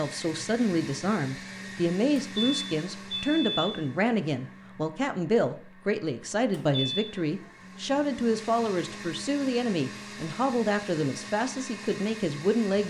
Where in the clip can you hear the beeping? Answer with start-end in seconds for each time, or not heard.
2.1-3.8, 6.5-7.2.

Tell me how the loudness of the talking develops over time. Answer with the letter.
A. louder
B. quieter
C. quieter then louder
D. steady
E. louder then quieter
D.